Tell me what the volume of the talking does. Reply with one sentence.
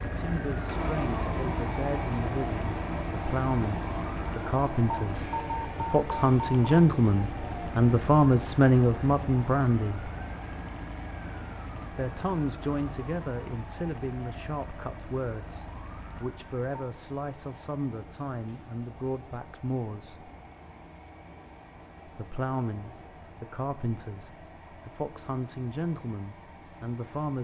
The volume of the talking goes up, then down.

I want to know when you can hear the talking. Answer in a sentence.
The talking can be heard from 0.1 to 10.1 s, from 11.9 to 20.3 s and from 22.1 to 27.4 s.